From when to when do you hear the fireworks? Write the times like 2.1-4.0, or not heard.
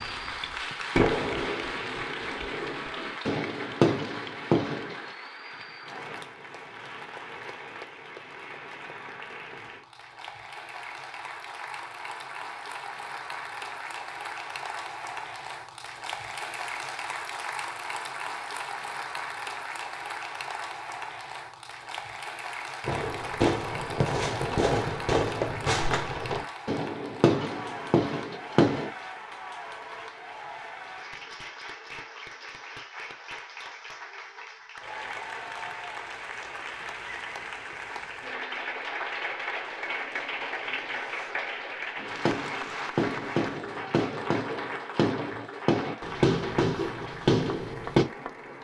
0.0-5.0, 22.8-28.9, 42.0-48.0.